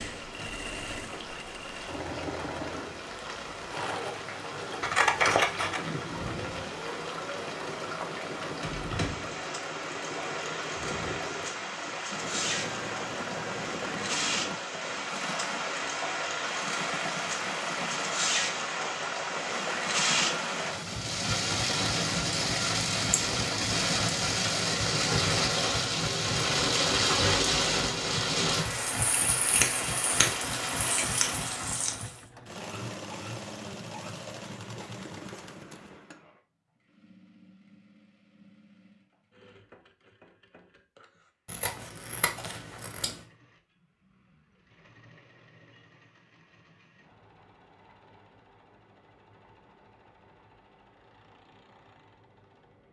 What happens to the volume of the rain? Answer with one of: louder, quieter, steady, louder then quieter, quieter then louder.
louder.